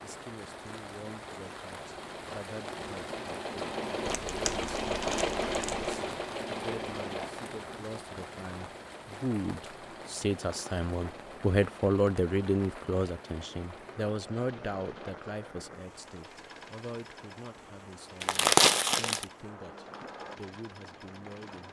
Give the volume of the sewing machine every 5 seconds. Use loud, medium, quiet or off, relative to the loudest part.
loud, loud, quiet, quiet, quiet.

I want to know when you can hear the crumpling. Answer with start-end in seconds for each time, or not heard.
4.0-5.9, 18.2-19.2.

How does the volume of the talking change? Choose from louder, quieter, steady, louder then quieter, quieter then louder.
louder then quieter.